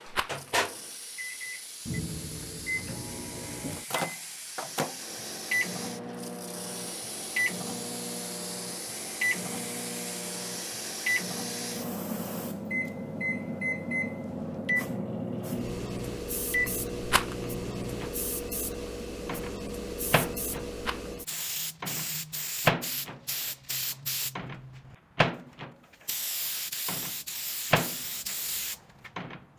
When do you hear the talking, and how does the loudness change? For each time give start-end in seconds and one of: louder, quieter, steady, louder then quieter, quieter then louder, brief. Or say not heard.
not heard.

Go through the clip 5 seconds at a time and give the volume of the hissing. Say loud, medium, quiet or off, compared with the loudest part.
medium, medium, loud, loud, loud, loud.